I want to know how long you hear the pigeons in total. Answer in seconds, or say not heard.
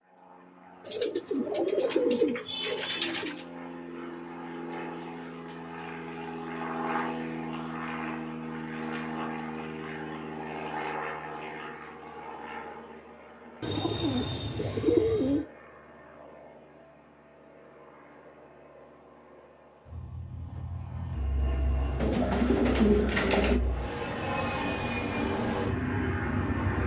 6 s.